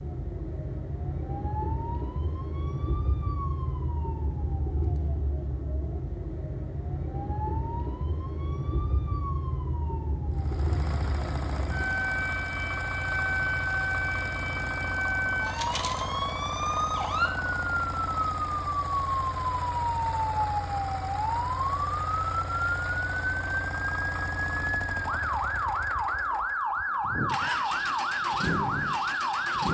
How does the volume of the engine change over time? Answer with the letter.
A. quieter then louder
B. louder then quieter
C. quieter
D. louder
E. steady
E.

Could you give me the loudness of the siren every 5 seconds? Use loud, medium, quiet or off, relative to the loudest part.
medium, medium, loud, loud, loud, loud.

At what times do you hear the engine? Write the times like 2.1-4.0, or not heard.
10.3-29.7.